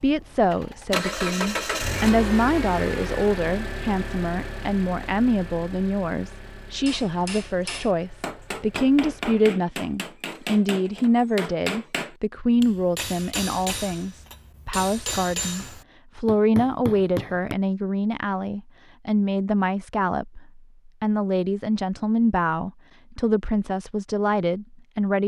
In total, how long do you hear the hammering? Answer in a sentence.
The hammering can be heard for 11 seconds in total.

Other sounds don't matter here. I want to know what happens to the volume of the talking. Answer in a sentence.
The loudness of the talking stays about the same.